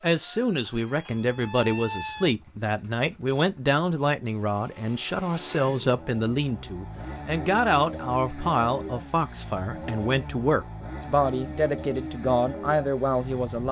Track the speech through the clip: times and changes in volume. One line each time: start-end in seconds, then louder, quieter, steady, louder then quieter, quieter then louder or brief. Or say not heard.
0.0-13.6 steady.